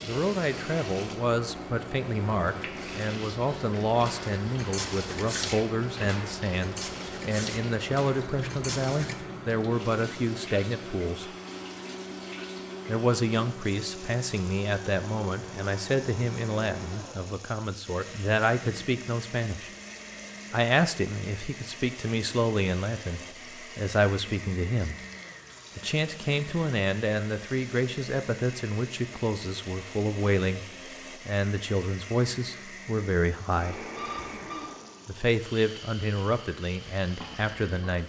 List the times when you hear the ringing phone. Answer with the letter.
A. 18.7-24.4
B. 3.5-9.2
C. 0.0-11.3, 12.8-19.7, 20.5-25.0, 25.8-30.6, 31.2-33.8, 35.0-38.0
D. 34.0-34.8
D.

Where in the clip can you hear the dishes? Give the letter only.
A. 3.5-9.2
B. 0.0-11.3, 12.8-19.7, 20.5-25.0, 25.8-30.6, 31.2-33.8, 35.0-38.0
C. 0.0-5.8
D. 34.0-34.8
A.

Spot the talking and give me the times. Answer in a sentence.
The talking can be heard from 0.0 to 11.3 s, from 12.8 to 19.7 s, from 20.5 to 25.0 s, from 25.8 to 30.6 s, from 31.2 to 33.8 s and from 35.0 to 38.0 s.